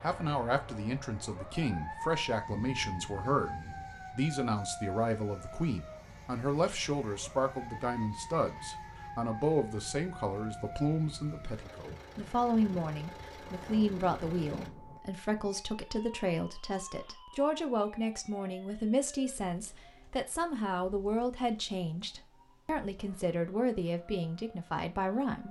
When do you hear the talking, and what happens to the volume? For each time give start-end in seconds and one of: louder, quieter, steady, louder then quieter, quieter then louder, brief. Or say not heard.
0.0-25.4 steady.